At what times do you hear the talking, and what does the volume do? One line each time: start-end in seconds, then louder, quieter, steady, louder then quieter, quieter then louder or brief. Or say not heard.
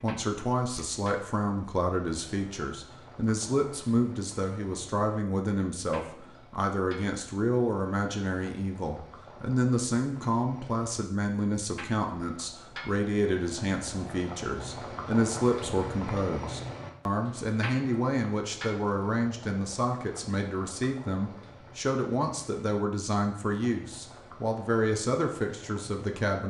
0.0-26.4 steady.